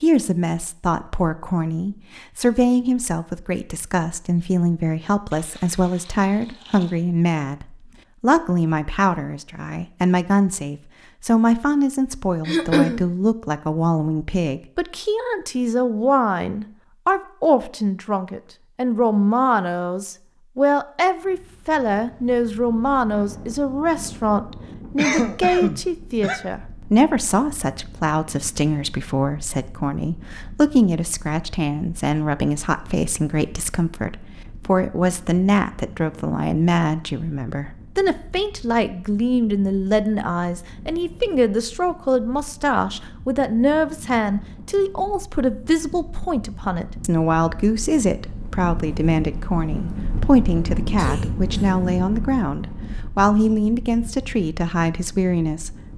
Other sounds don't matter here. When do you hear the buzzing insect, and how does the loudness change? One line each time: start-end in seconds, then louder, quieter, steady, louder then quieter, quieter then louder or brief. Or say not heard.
not heard.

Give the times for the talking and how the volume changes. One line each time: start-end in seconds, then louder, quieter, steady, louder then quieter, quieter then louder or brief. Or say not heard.
0.0-55.8 steady.